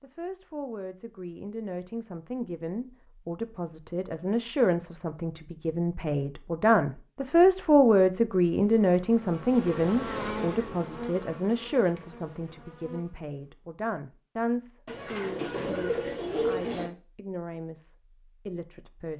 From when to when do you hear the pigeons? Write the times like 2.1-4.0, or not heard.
14.8-16.9.